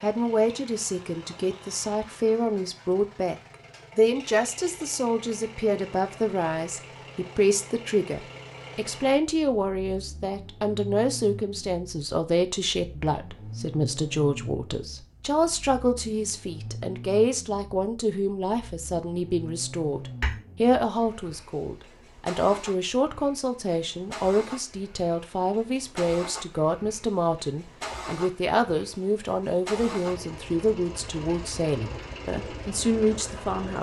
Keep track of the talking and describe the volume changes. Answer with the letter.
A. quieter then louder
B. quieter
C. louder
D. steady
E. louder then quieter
D.